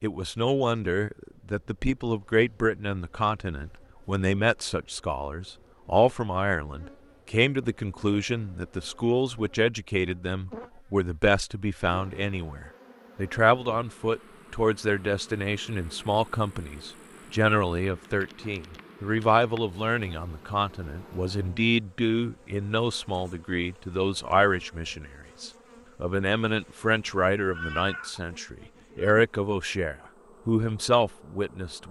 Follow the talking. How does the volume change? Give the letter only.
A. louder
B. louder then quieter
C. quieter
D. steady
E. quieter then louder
D.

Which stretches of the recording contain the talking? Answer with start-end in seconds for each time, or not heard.
0.0-31.8.